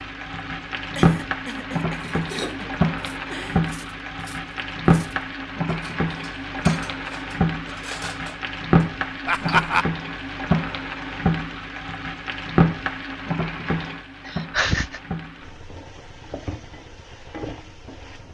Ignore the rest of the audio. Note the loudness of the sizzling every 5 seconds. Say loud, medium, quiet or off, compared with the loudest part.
loud, loud, loud, quiet.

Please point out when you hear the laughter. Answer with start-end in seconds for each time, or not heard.
0.9-3.6, 9.2-9.8, 14.2-15.0.